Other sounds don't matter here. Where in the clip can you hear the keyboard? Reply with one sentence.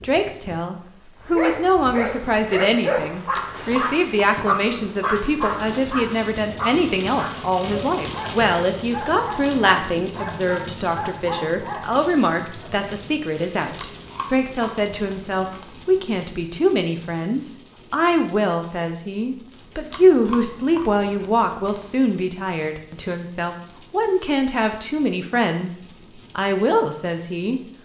You can't hear the keyboard here.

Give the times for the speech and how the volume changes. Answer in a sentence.
You can hear the speech from 0.0 to 27.6 s, at a steady volume.